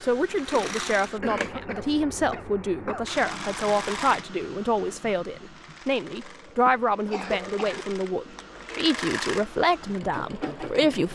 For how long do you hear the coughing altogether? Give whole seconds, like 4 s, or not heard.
3 s.